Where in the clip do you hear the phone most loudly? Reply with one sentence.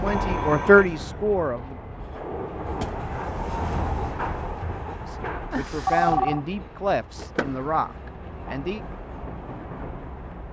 The volume of the phone peaks at 6 seconds.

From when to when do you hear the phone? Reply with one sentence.
The phone can be heard from 0.1 to 1.1 s and from 5.5 to 6.4 s.